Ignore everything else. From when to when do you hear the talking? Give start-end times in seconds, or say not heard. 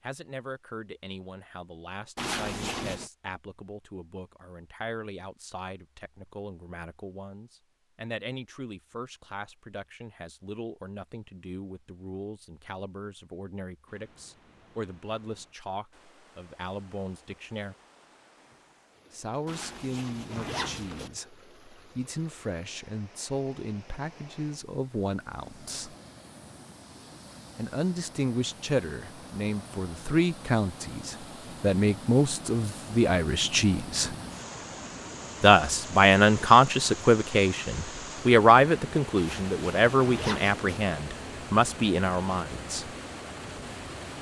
0.0-17.8, 19.1-25.9, 27.6-34.1, 35.4-43.0.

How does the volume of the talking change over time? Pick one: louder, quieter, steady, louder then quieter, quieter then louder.
louder.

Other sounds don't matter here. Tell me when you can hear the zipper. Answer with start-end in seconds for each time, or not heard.
2.1-3.1, 19.4-21.1, 39.1-40.8.